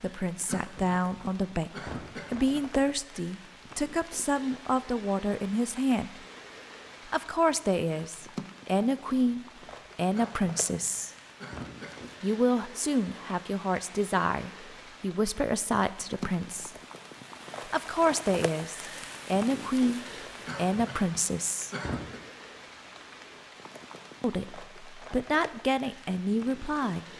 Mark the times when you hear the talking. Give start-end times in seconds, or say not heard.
0.0-1.7, 2.3-6.1, 7.0-11.1, 12.2-16.7, 17.6-21.7, 24.2-27.1.